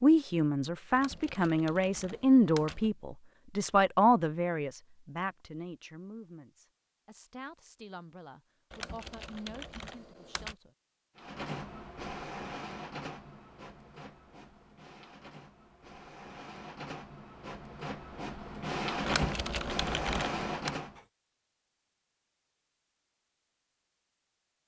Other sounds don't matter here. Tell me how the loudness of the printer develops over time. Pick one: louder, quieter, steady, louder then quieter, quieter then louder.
quieter then louder.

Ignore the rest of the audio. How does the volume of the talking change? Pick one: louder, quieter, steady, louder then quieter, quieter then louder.
quieter.